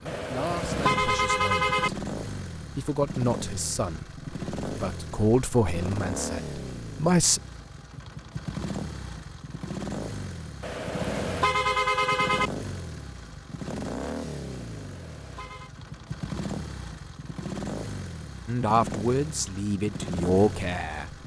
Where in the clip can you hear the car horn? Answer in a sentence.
The car horn can be heard from 0.1 to 1.9 s, from 10.6 to 12.5 s and from 14.6 to 15.7 s.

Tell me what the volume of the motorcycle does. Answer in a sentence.
The volume of the motorcycle stays about the same.